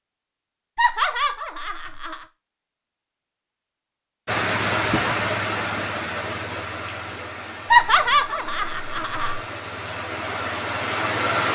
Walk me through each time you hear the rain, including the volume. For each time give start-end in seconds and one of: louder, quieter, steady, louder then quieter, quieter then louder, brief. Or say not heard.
4.2-11.5 quieter then louder.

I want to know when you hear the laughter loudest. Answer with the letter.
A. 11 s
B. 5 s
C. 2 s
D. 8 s
D.